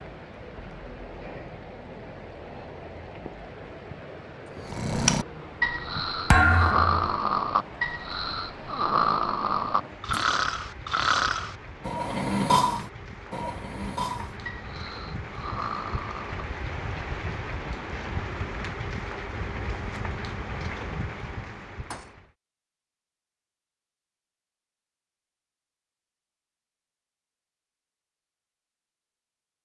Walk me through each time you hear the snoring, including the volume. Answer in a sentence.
The snoring can be heard from 4.5 to 16.4 s, getting quieter.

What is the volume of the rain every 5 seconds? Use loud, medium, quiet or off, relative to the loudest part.
medium, medium, medium, loud, loud, off.